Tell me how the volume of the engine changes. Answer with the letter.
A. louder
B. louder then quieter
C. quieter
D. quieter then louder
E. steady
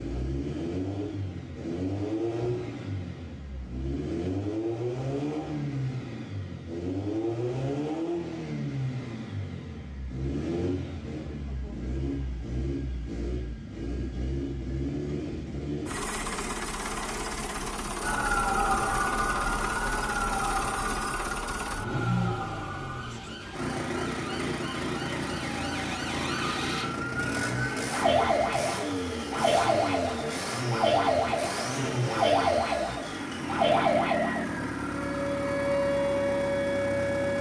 E.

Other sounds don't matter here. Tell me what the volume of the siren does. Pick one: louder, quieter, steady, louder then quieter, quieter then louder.
quieter then louder.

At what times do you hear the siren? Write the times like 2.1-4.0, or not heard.
18.0-37.3.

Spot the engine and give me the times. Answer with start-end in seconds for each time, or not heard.
0.0-37.3.